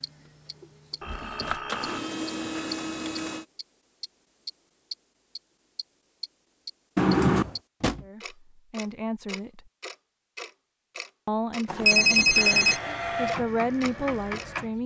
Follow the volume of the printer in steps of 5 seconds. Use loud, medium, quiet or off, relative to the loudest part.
loud, off, loud.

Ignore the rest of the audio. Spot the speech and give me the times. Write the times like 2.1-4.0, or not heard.
8.0-9.7, 11.2-14.8.